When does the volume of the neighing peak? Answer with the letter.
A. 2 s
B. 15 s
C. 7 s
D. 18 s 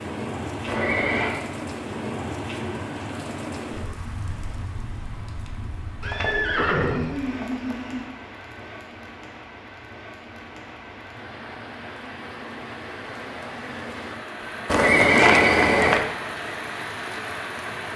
B.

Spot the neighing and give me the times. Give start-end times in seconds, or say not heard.
0.7-1.4, 6.0-8.0, 14.7-16.1.